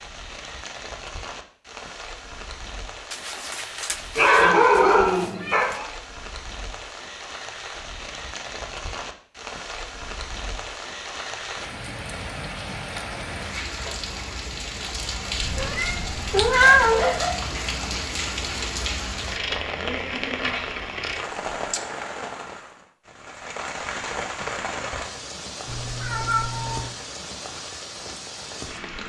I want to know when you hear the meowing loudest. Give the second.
17 s.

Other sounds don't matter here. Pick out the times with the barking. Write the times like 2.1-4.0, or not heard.
4.2-5.8, 15.4-17.4.